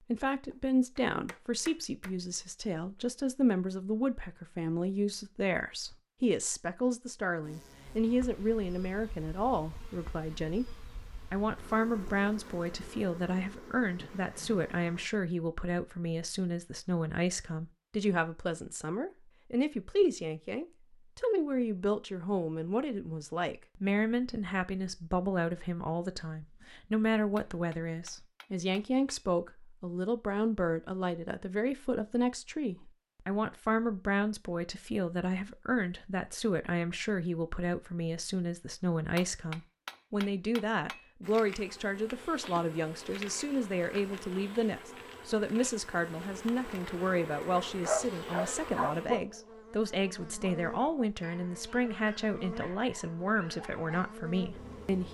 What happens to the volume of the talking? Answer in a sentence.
The volume of the talking stays about the same.